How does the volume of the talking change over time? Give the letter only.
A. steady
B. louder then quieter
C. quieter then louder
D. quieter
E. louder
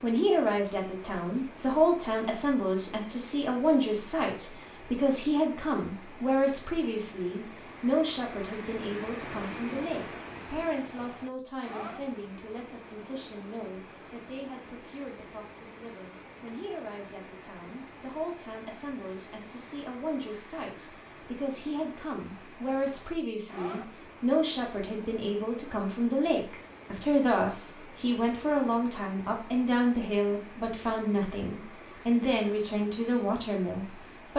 C.